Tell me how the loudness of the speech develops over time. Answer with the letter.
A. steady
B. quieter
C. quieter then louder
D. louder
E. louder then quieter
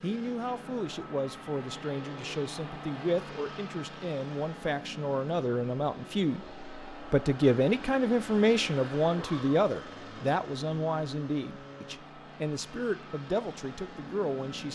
E.